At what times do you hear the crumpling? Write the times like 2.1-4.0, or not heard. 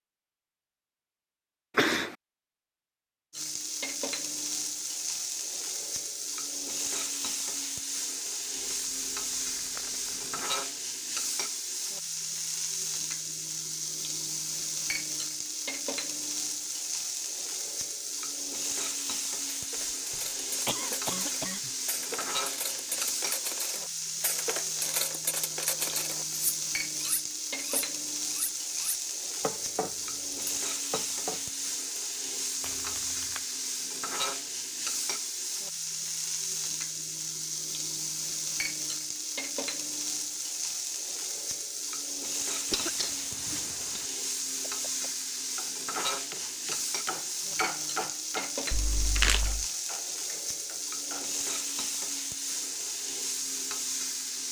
8.5-10.4, 32.6-33.5, 48.7-49.6.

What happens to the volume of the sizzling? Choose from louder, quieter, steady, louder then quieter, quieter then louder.
steady.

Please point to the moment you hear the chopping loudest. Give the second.
48 s.